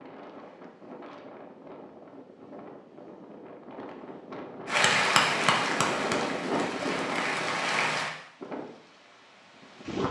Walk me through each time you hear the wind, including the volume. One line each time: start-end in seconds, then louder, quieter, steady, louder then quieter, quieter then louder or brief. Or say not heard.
0.0-10.0 louder then quieter.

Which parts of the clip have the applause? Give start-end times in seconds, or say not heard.
4.7-8.1.